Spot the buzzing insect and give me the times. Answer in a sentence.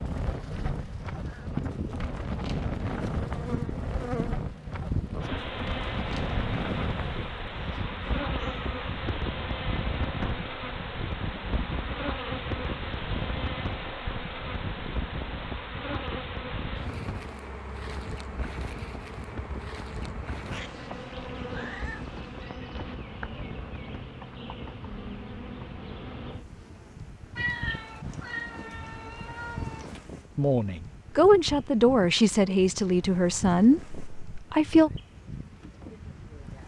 The buzzing insect can be heard from 0.0 to 36.6 s.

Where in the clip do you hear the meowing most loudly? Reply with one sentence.
The loudest moment of the meowing is at 28 seconds.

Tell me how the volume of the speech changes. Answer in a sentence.
The volume of the speech goes down.